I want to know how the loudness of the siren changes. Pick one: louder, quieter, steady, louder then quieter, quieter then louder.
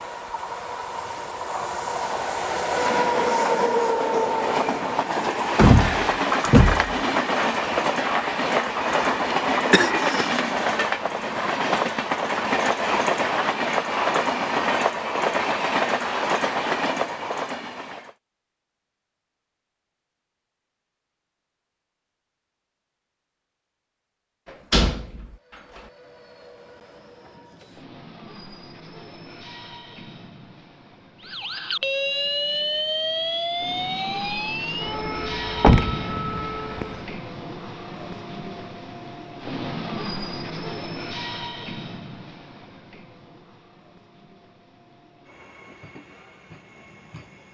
quieter.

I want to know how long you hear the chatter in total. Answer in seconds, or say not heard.
not heard.